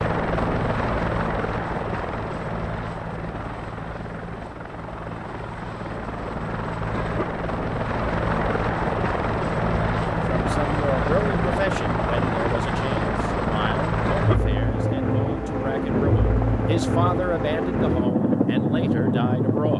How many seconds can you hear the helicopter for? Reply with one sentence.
The helicopter can be heard for 20 seconds in total.